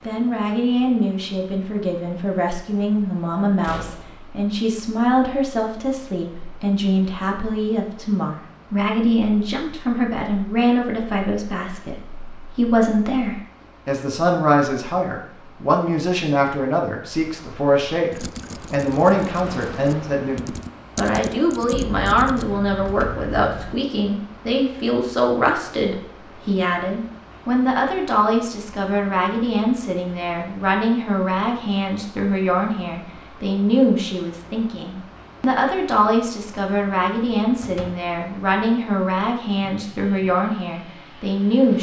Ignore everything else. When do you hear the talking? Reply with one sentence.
You can hear the talking from 0.0 to 41.7 s.